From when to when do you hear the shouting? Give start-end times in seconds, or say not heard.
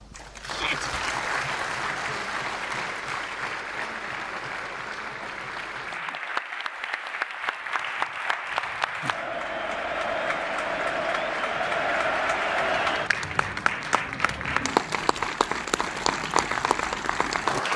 0.5-0.9.